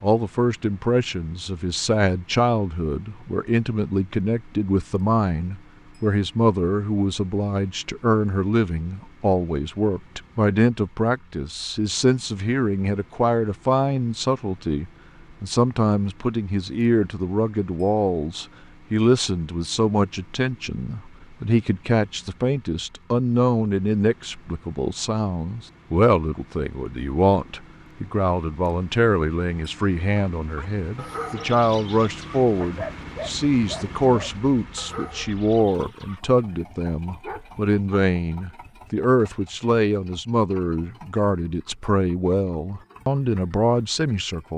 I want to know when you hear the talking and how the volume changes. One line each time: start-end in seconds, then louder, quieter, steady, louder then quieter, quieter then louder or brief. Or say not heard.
0.0-44.5 steady.